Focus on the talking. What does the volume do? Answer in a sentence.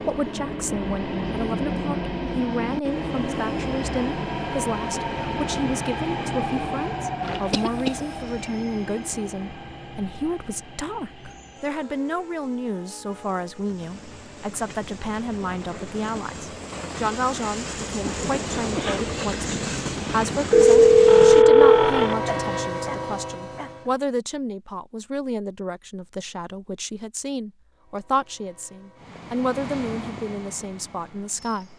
The loudness of the talking stays about the same.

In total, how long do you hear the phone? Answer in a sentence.
You can hear the phone for 3 seconds altogether.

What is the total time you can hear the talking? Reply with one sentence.
You can hear the talking for 32 seconds altogether.